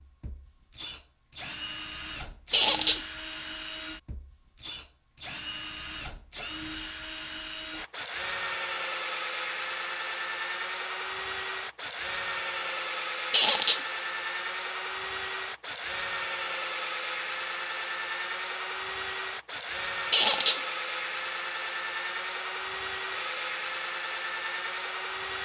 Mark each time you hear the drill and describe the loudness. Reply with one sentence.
You can hear the drill from 0.0 to 25.4 s, at a steady volume.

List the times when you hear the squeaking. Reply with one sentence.
You can hear the squeaking from 2.5 to 3.0 s, from 13.3 to 13.8 s and from 20.1 to 20.6 s.